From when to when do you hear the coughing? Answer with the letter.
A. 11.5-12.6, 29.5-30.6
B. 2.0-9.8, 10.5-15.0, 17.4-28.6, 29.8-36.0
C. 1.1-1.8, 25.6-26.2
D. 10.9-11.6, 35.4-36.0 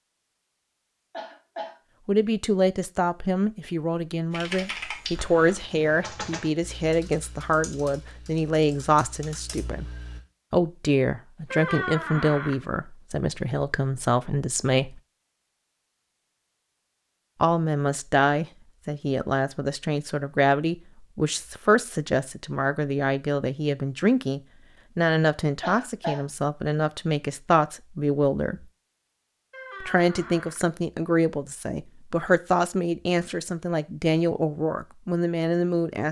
C.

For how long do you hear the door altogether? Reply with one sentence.
You can hear the door for 2 seconds altogether.